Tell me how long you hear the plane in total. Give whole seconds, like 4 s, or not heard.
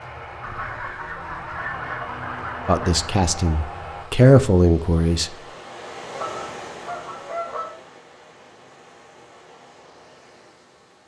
4 s.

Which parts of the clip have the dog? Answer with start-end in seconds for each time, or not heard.
not heard.